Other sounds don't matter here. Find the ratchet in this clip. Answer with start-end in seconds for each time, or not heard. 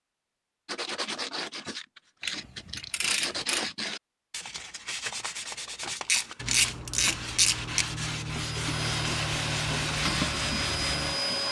2.2-3.7, 5.8-7.8.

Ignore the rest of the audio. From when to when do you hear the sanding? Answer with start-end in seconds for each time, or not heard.
0.7-11.2.